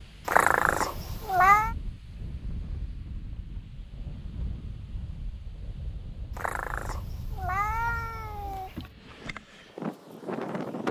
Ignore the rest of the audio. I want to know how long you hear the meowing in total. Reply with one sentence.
The meowing can be heard for 4 seconds in total.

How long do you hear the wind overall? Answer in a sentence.
You can hear the wind for 11 seconds altogether.